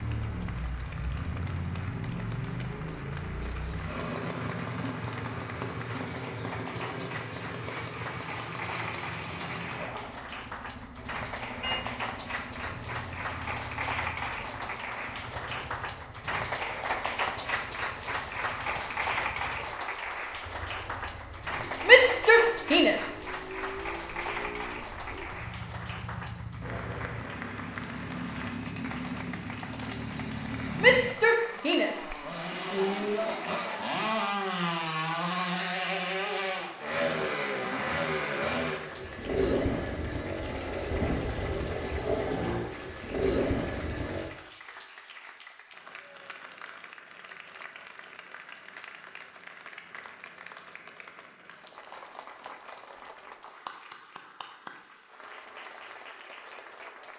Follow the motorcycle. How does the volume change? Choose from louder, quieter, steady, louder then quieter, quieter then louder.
quieter then louder.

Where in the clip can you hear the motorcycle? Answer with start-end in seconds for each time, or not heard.
0.0-44.3.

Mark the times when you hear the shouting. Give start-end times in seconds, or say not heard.
21.9-23.1, 30.8-33.2.